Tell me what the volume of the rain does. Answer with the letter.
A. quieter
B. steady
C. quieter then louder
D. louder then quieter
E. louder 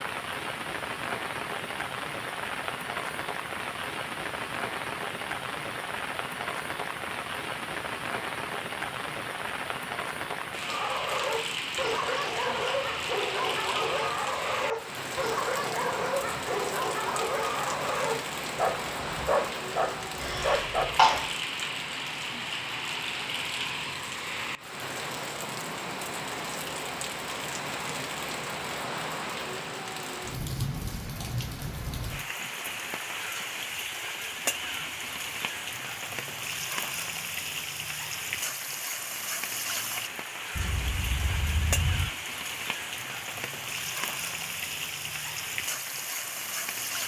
B.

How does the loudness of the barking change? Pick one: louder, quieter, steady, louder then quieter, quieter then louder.
steady.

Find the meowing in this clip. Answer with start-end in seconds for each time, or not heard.
40.5-42.1.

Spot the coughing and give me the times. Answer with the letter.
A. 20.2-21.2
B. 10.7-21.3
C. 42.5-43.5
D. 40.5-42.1
A.